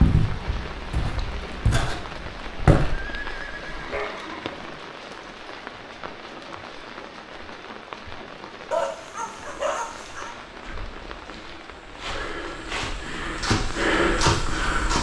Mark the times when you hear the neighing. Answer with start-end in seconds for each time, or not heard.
2.9-4.7.